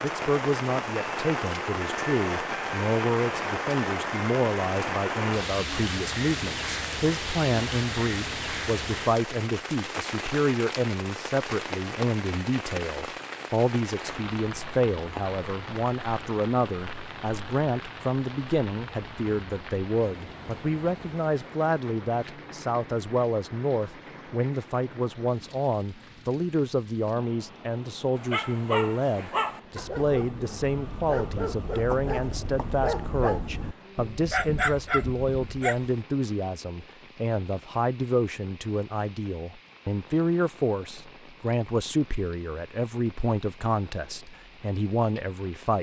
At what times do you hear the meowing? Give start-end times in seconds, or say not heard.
not heard.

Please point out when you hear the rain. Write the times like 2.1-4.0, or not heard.
0.0-45.7.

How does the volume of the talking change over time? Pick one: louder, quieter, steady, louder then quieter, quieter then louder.
steady.